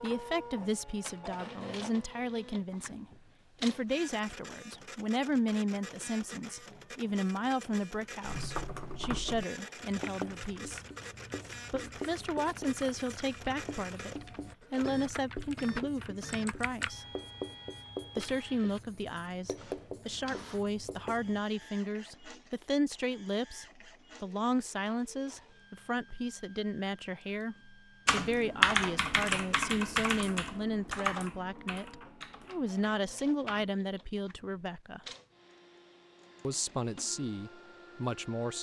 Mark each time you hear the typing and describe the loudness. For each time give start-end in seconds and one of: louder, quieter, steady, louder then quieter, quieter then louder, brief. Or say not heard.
8.2-16.9 quieter then louder
28.1-33.6 quieter.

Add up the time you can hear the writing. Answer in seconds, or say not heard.
12 s.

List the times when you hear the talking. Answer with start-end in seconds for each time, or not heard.
0.0-10.8, 11.7-17.1, 18.1-35.0, 36.5-38.5.